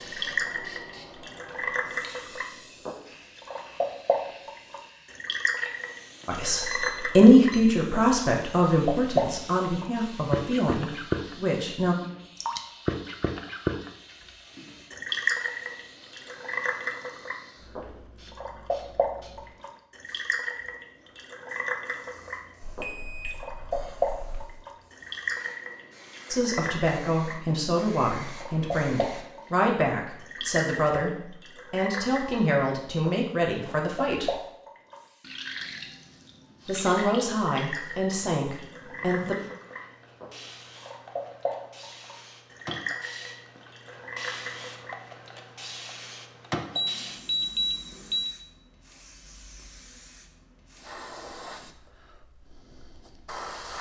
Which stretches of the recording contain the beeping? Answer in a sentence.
You can hear the beeping from 6.2 to 7.6 s, from 22.6 to 24.4 s and from 46.8 to 48.3 s.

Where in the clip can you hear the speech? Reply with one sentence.
You can hear the speech from 6.2 to 11.9 s, from 26.3 to 34.4 s and from 36.6 to 39.4 s.